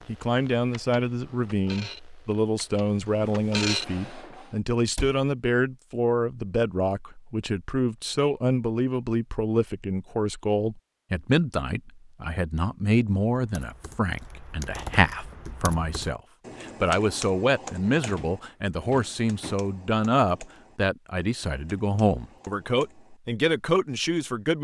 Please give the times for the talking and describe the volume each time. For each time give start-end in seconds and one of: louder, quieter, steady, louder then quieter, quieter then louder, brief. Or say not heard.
0.1-24.5 steady.